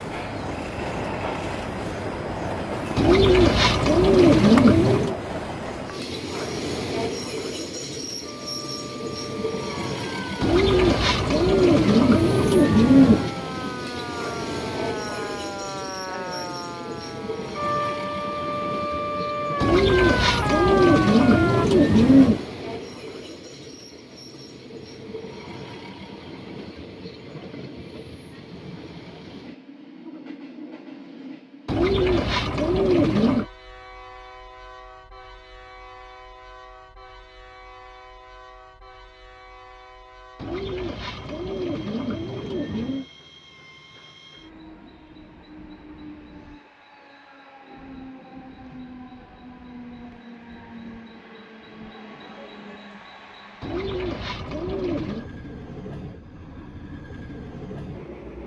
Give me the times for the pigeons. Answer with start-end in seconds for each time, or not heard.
3.0-5.2, 10.4-13.3, 19.6-22.4, 31.6-33.5, 40.4-43.0, 53.6-55.3.